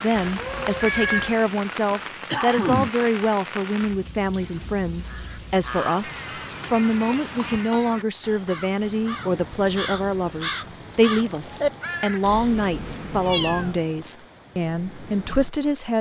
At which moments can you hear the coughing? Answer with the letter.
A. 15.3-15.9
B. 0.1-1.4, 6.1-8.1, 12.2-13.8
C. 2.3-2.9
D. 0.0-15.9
C.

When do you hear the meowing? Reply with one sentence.
You can hear the meowing from 0.1 to 1.4 s, from 6.1 to 8.1 s and from 12.2 to 13.8 s.